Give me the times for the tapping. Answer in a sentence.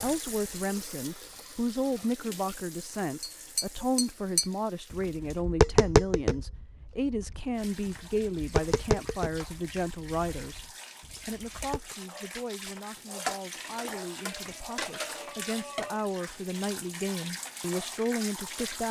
You can hear the tapping from 3.2 to 11.9 s.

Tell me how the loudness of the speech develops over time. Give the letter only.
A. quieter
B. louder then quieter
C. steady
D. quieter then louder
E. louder
D.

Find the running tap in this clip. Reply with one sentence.
The running tap can be heard from 0.0 to 5.5 s and from 7.5 to 18.8 s.